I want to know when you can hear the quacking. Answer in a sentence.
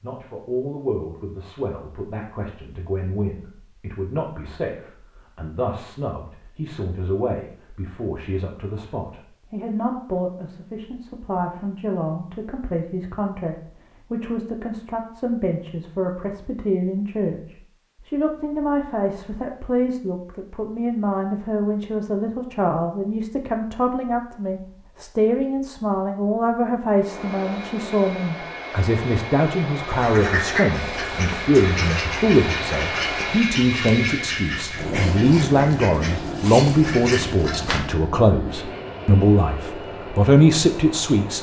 You can hear the quacking from 29.9 to 37.8 s.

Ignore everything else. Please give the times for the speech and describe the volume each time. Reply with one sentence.
The speech can be heard from 0.0 to 41.3 s, getting louder.